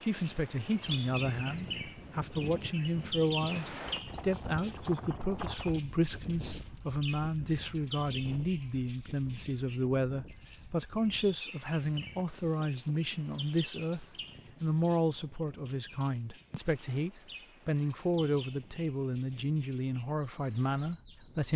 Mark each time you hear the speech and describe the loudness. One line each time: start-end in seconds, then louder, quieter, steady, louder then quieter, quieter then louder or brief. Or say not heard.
0.0-21.5 steady.